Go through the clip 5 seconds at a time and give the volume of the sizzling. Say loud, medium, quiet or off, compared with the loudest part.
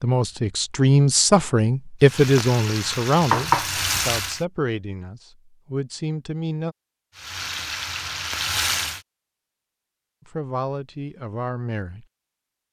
loud, loud, off.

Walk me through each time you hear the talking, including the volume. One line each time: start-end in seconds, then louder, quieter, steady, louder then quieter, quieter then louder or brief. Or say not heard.
0.0-6.8 quieter
10.2-12.1 brief.